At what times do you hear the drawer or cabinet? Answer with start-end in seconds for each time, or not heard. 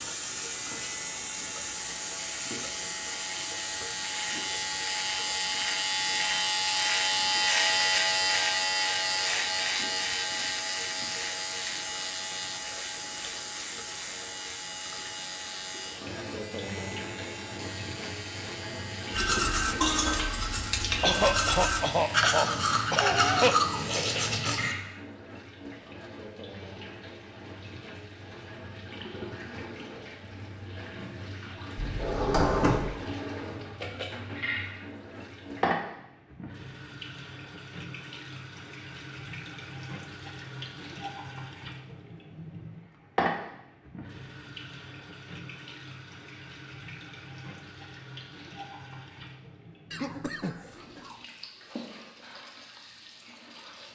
31.8-32.9.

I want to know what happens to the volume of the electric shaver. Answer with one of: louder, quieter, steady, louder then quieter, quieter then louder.
louder then quieter.